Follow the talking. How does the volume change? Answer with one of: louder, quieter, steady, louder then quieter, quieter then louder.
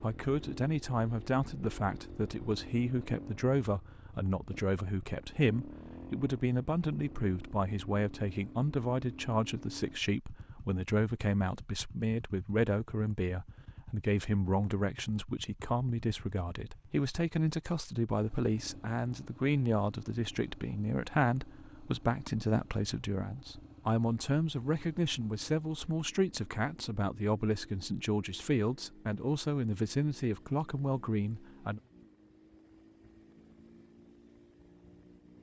steady.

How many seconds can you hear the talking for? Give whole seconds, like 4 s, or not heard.
32 s.